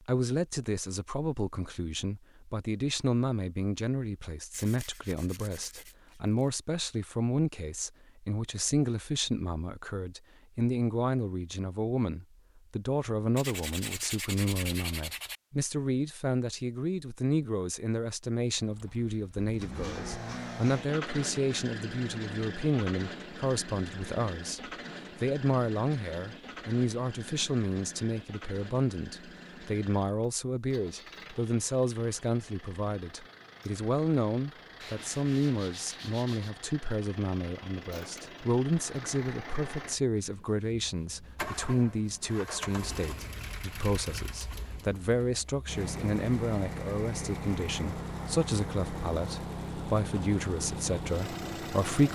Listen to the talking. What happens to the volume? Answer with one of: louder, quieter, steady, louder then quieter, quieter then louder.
steady.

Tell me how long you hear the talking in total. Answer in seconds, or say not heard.
52 s.